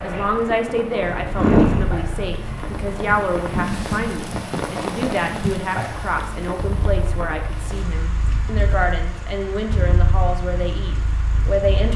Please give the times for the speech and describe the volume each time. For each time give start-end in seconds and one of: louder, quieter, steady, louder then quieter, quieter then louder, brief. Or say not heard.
0.0-11.9 steady.